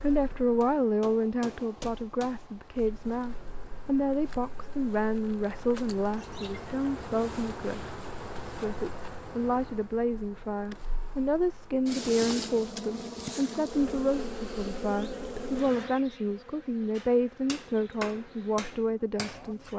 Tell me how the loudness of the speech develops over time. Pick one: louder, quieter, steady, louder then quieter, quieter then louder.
steady.